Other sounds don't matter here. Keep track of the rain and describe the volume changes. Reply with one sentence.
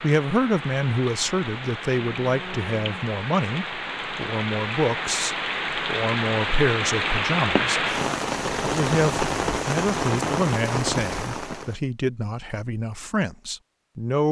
The loudness of the rain goes up.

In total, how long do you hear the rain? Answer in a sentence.
The rain can be heard for 12 seconds in total.